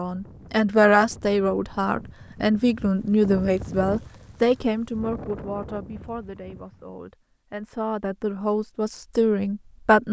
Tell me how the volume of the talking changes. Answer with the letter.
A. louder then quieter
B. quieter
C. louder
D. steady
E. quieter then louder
E.